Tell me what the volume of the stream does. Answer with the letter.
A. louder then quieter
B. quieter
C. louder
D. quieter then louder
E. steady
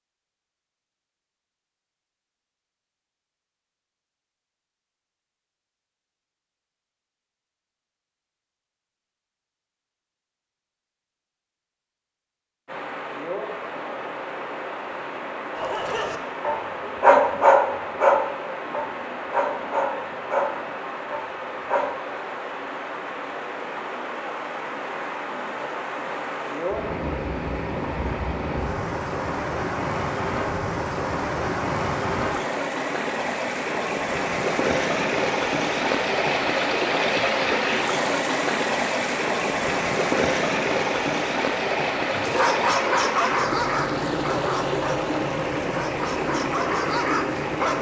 C.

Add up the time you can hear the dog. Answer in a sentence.
You can hear the dog for 12 seconds altogether.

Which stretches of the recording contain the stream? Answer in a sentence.
You can hear the stream from 12.7 to 47.7 s.